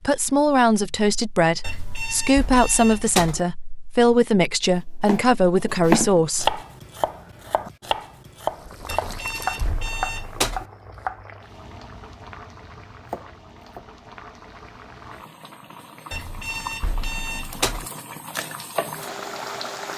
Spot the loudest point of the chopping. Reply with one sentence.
The loudest moment of the chopping is at 6 seconds.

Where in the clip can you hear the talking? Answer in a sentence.
The talking can be heard from 0.0 to 6.6 s.